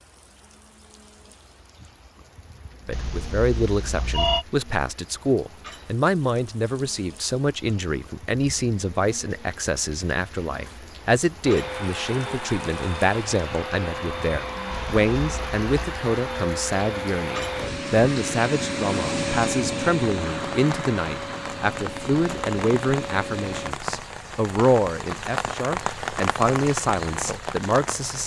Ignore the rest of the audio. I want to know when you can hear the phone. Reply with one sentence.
The phone can be heard from 2.9 to 4.5 s and from 14.7 to 15.7 s.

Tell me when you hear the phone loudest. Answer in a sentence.
The loudest moment of the phone is at 4 seconds.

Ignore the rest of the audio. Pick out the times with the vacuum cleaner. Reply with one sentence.
The vacuum cleaner can be heard from 11.4 to 23.8 s.